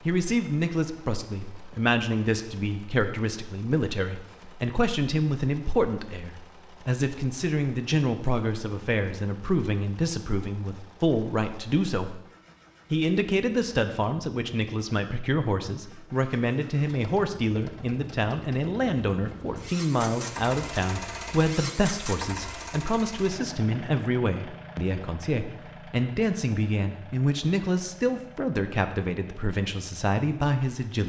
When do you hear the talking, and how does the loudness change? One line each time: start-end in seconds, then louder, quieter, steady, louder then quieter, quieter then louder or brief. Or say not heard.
0.1-12.2 steady
12.9-31.0 steady.